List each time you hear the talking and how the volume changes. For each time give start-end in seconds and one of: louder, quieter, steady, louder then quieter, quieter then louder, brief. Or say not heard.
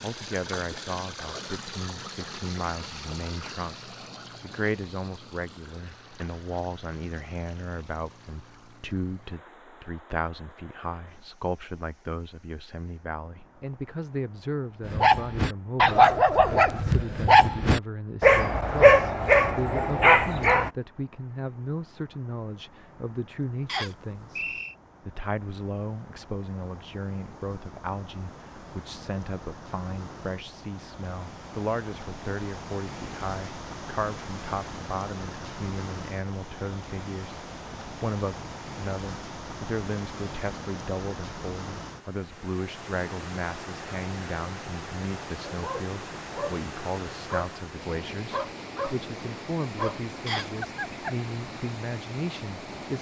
0.0-52.9 steady.